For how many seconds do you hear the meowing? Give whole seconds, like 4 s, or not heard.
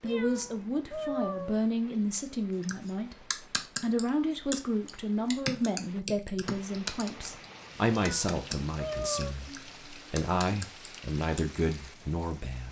3 s.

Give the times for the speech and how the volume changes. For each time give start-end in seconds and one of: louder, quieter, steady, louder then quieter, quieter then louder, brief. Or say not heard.
0.0-12.6 steady.